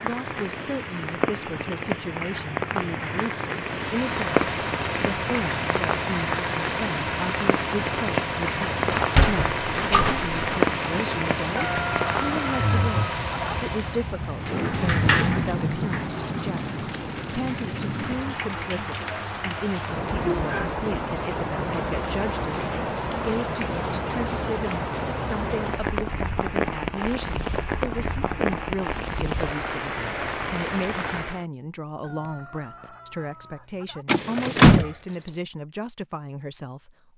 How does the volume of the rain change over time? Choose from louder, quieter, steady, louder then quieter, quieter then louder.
steady.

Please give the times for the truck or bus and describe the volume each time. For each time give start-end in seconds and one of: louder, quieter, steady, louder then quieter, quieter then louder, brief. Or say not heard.
3.6-14.2 steady.